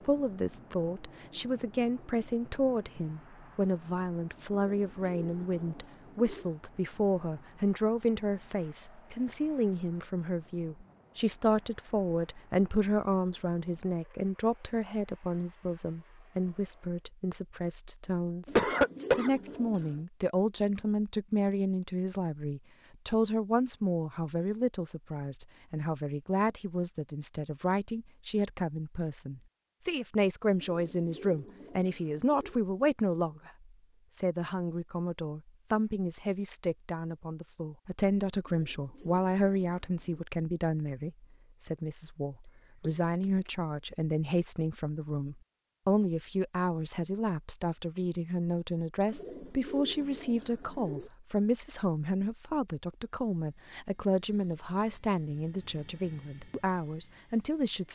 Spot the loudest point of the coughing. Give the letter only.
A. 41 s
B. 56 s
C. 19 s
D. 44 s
C.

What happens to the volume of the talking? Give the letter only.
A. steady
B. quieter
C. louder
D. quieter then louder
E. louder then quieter
A.